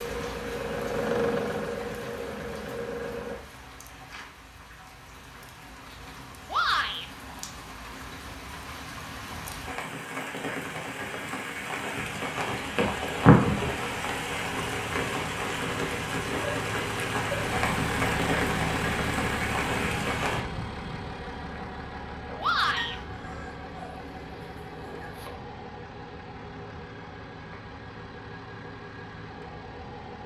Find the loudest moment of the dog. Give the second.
23 s.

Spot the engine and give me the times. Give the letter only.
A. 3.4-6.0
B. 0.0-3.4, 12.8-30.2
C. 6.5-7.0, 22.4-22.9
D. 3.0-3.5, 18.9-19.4
B.